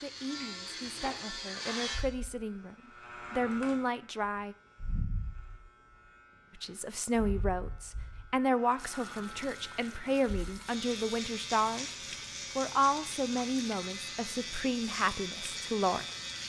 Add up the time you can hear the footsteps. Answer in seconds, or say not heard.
not heard.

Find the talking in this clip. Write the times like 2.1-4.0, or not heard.
0.0-4.5, 6.5-11.9, 12.6-16.1.